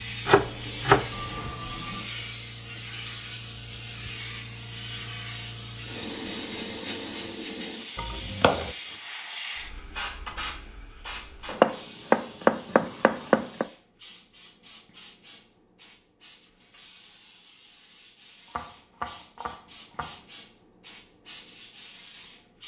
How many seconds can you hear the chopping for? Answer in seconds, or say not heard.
6 s.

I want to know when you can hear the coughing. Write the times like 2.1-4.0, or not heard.
not heard.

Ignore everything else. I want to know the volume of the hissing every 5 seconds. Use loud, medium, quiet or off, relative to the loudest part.
loud, loud, medium, quiet, medium.